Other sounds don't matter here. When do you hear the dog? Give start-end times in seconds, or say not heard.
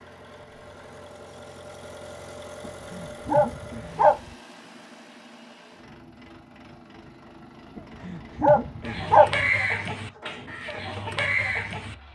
2.6-4.2, 7.8-9.4.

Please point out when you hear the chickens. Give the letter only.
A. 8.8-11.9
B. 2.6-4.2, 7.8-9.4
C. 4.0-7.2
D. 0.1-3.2
A.